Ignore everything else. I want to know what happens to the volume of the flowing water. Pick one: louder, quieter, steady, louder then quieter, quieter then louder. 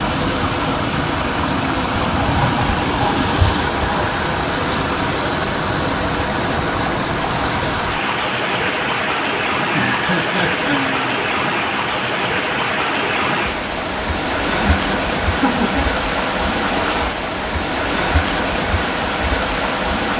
steady.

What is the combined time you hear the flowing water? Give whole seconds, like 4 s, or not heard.
20 s.